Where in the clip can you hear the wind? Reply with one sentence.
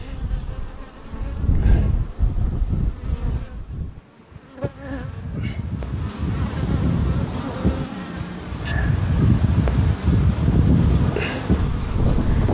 You can hear the wind from 0.0 to 12.4 s.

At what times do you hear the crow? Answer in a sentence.
You can't hear the crow here.